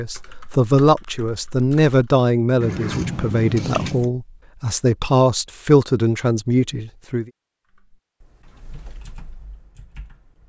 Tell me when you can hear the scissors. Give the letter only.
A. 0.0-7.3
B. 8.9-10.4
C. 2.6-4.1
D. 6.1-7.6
C.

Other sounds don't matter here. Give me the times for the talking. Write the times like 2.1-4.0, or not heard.
0.0-7.3.